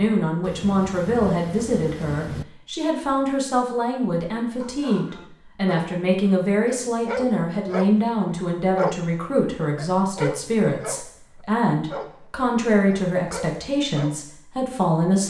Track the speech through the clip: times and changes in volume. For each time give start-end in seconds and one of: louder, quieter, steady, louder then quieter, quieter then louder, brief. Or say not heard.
0.0-15.2 steady.